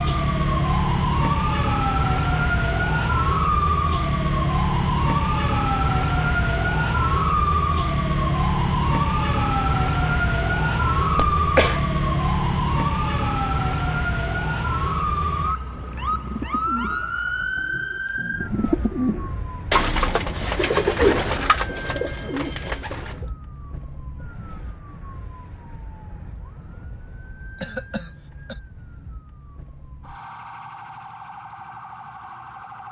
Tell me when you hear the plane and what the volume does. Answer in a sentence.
You can't hear the plane here.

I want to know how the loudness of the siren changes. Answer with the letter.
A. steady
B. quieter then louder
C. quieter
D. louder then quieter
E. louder
C.